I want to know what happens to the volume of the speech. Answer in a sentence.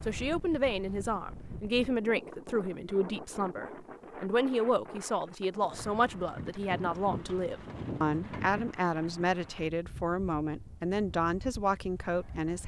The loudness of the speech stays about the same.